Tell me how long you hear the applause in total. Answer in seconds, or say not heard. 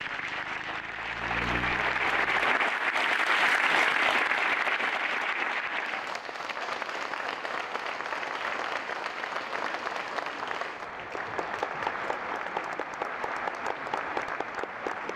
15 s.